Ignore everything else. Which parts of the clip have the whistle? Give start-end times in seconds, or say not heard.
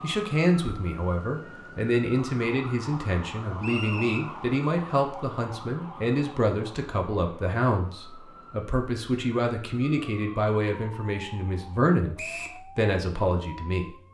3.6-4.2, 12.2-12.6.